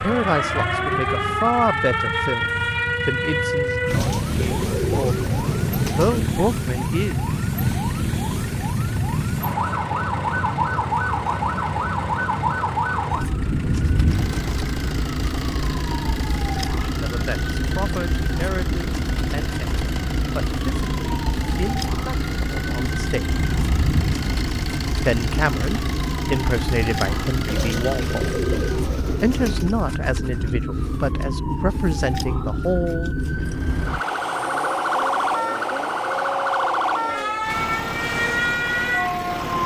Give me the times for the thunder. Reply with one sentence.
You can hear the thunder from 13.4 to 14.5 s and from 23.3 to 24.4 s.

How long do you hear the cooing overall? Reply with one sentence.
You can hear the cooing for 5 seconds altogether.